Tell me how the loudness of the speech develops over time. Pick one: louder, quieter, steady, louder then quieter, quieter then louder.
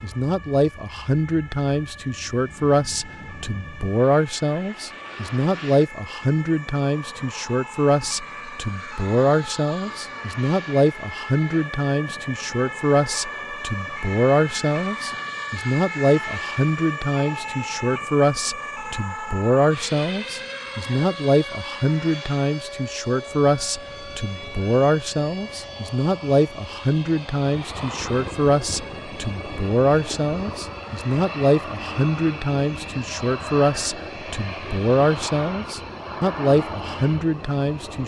steady.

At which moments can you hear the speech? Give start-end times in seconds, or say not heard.
0.0-38.0.